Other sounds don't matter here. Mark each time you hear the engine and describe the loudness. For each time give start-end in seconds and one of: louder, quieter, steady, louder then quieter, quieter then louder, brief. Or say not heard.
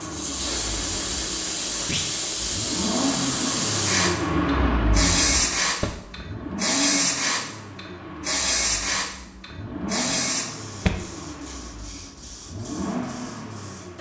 0.0-13.9 louder then quieter.